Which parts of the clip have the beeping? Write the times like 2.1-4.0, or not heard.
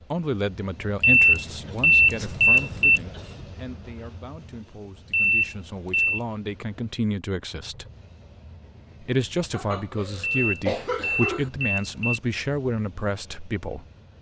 1.0-3.0, 5.1-6.2, 10.3-12.2.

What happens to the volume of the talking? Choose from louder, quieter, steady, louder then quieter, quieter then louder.
quieter then louder.